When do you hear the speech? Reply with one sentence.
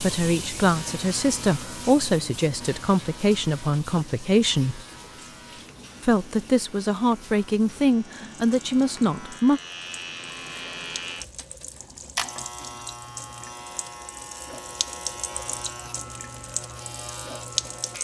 The speech can be heard from 0.0 to 4.8 s and from 6.0 to 9.6 s.